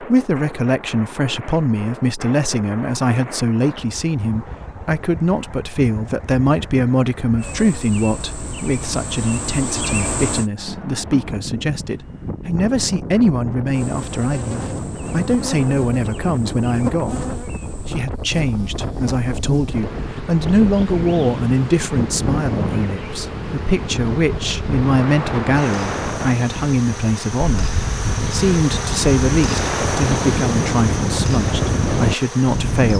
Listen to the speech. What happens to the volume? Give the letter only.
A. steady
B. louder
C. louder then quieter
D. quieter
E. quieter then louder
A.